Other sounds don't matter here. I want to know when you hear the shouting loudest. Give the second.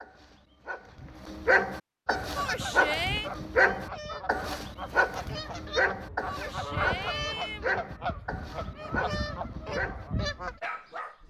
3 s.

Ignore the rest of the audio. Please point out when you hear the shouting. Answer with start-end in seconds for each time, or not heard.
2.4-3.3, 6.2-7.7.